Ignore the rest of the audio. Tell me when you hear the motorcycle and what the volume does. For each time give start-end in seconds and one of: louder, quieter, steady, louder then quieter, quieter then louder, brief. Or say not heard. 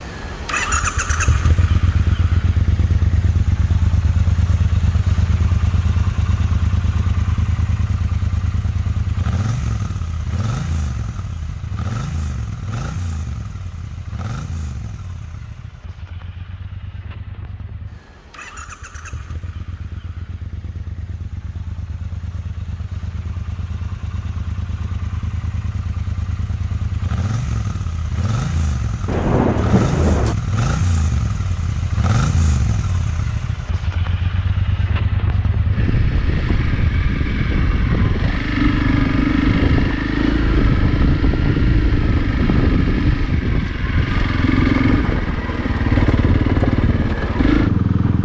0.0-48.2 quieter then louder.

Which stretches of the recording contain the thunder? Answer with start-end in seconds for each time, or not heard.
29.1-30.4.